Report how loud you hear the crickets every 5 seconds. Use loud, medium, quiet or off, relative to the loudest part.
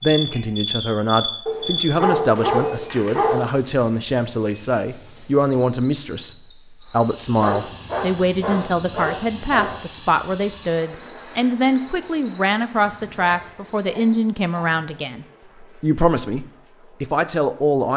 loud, loud, loud, off.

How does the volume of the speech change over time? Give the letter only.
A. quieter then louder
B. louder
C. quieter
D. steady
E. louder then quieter
D.